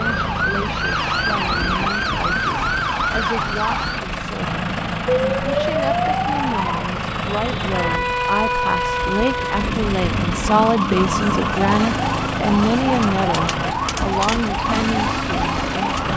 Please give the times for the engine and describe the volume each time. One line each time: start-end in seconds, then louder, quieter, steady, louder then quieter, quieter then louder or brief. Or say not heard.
0.0-16.1 steady.